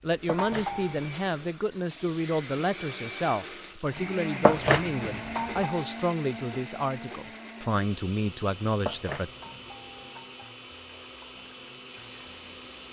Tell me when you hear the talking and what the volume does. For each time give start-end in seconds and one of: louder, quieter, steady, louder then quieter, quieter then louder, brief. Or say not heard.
0.0-9.3 steady.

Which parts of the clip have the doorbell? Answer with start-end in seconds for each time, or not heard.
0.3-1.0, 5.3-6.0, 9.4-10.6.